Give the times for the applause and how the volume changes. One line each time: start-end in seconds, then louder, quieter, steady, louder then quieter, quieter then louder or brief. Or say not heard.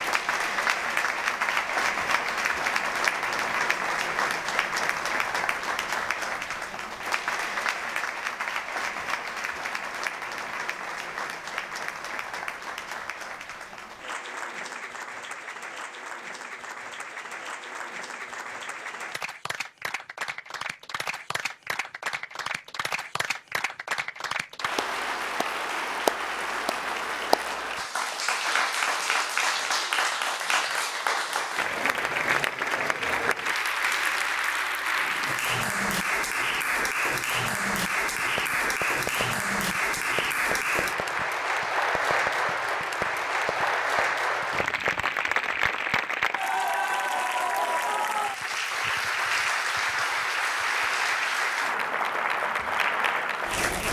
0.0-53.8 quieter then louder.